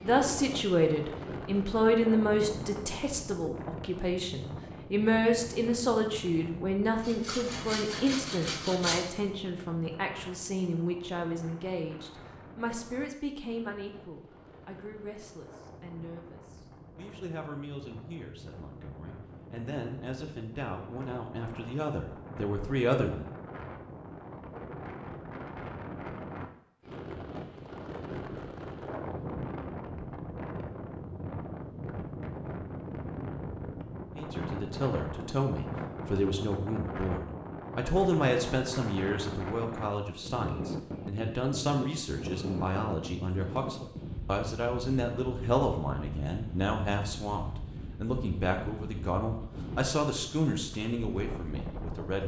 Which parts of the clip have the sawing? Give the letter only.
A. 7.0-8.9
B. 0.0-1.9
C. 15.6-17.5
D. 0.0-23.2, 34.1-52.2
A.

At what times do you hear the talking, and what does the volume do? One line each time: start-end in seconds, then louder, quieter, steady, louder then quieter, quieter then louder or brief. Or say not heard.
0.0-23.2 quieter then louder
34.1-52.2 steady.